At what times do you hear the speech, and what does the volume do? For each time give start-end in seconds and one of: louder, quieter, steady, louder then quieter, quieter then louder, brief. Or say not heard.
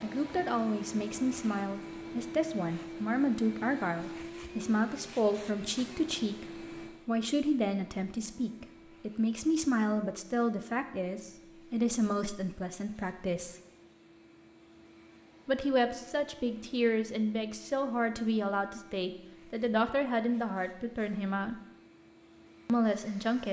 0.0-13.6 steady
15.4-21.6 steady
22.6-23.4 brief.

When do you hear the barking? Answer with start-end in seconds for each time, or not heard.
not heard.